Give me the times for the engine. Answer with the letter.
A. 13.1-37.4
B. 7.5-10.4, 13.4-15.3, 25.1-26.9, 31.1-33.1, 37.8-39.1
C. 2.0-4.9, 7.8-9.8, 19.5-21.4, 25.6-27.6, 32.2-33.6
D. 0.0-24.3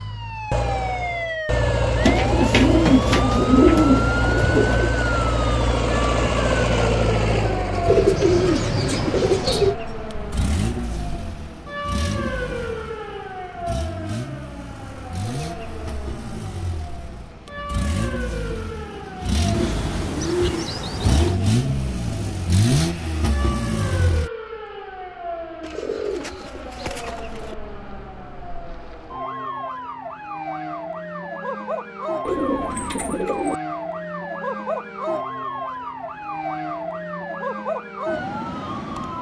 D.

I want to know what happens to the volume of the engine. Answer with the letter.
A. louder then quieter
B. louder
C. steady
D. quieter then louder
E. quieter
D.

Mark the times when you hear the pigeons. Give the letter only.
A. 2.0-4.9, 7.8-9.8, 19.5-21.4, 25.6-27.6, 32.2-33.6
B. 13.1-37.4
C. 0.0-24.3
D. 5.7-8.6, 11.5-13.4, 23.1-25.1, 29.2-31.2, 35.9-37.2
A.